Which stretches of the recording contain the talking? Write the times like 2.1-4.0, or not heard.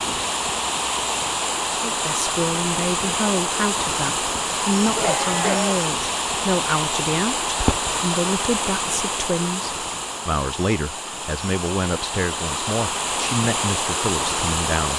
1.7-14.9.